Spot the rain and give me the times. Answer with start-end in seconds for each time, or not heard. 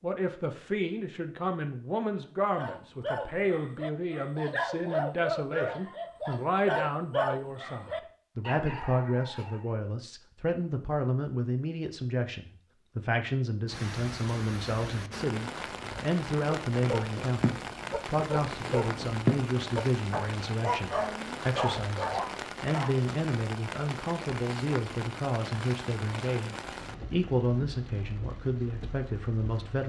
13.7-29.8.